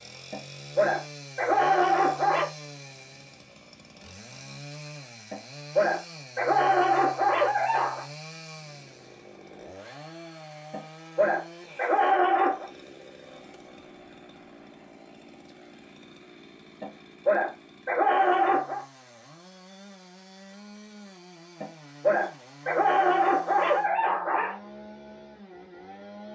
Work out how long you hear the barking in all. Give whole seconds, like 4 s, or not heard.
12 s.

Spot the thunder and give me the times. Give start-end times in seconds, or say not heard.
not heard.